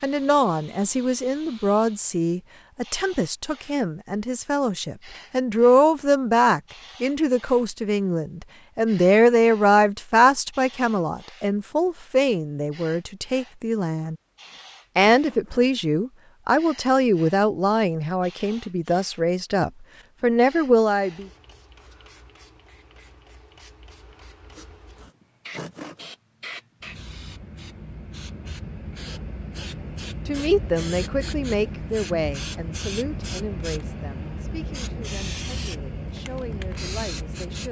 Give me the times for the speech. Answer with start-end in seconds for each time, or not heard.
0.0-14.2, 14.9-21.2, 30.2-37.6.